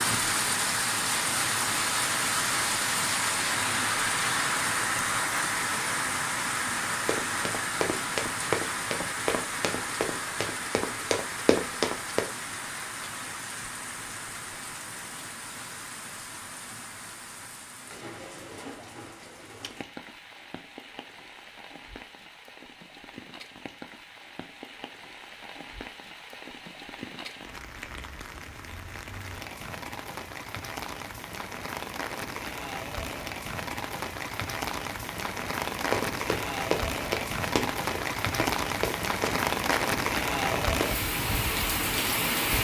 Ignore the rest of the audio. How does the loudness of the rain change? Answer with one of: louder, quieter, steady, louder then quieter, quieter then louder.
quieter then louder.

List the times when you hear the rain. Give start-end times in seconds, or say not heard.
0.0-42.5.